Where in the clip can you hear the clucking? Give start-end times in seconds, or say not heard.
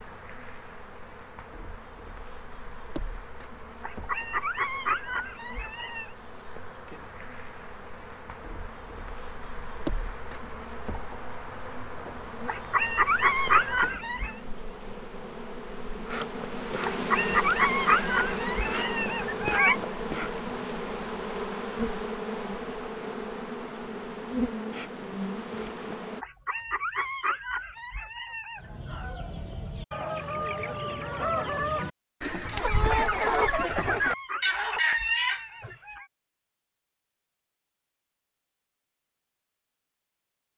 28.6-35.8.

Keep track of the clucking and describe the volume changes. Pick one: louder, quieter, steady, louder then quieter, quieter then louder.
louder.